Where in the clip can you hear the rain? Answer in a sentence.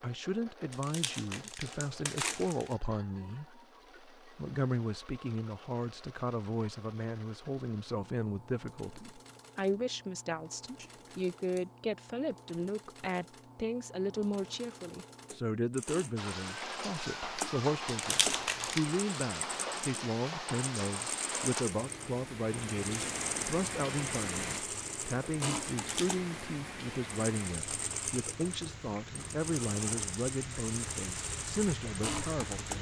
You can hear the rain from 16.1 to 32.7 s.